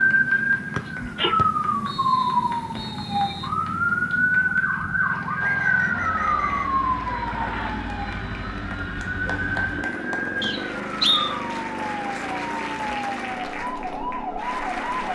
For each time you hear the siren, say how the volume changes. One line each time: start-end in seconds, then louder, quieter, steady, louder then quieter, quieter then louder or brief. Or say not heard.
0.0-15.1 quieter.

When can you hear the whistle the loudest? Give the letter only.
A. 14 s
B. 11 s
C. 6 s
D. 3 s
B.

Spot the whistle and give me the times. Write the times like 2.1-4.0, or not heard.
0.8-3.5, 5.4-6.7, 10.4-11.3.